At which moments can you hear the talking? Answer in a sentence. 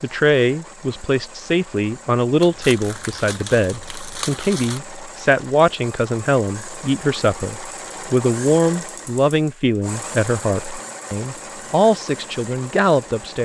The talking can be heard from 0.0 to 13.4 s.